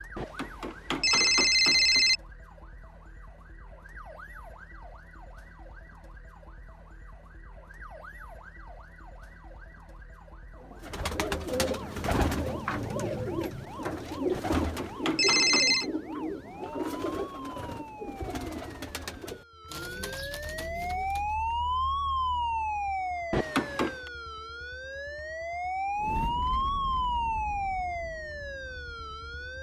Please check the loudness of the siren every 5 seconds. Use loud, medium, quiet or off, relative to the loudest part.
quiet, quiet, quiet, quiet, loud, loud.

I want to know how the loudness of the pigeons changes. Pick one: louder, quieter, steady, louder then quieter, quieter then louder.
quieter.